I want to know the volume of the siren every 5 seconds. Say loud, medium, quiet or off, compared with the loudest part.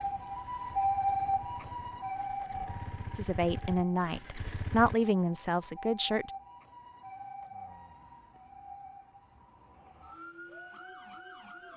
loud, quiet, quiet.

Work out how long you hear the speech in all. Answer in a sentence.
The speech can be heard for 3 seconds in total.